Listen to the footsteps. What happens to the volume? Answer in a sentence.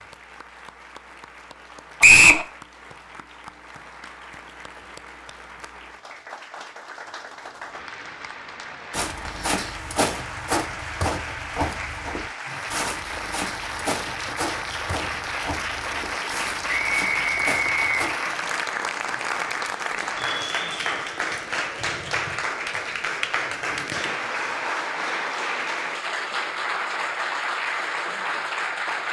The volume of the footsteps goes down.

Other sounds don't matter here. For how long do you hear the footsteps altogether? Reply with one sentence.
The footsteps can be heard for 9 seconds in total.